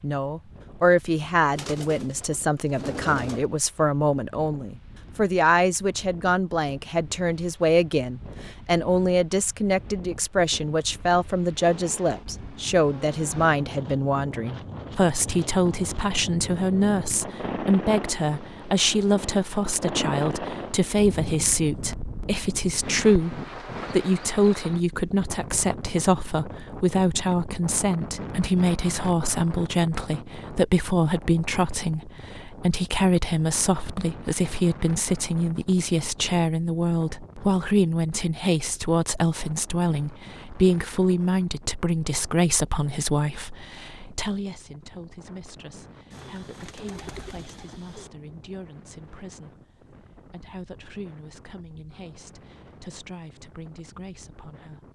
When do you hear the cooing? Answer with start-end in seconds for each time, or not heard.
1.6-3.5, 46.1-48.1.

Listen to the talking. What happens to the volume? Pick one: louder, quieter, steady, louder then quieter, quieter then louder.
quieter.